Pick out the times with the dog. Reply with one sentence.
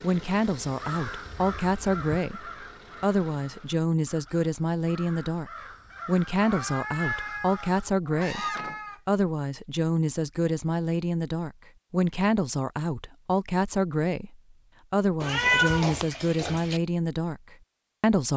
You can't hear the dog here.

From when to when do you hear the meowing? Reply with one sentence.
The meowing can be heard from 1.2 to 2.2 s, from 6.4 to 9.0 s and from 15.2 to 16.8 s.